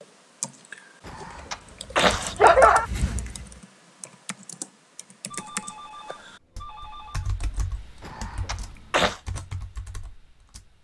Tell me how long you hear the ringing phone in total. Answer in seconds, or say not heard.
2 s.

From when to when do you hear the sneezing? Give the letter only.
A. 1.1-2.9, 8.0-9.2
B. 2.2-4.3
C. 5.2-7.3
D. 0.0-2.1
A.